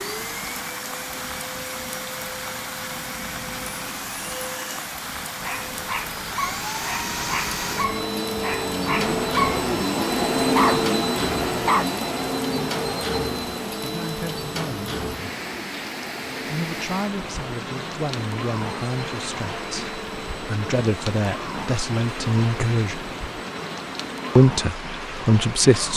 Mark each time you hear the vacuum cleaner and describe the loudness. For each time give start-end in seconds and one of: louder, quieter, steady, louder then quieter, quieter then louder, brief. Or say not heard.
0.0-24.4 louder then quieter.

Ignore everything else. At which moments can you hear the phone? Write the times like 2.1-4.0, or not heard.
not heard.